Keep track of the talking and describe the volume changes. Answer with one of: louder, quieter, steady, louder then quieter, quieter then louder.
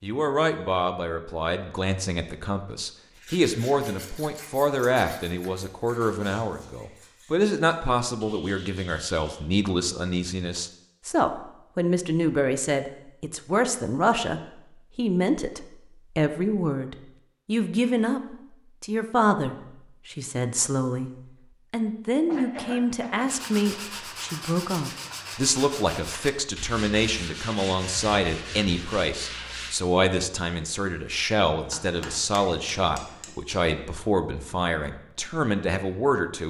steady.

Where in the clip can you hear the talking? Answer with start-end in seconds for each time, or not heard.
0.0-21.1, 21.7-36.4.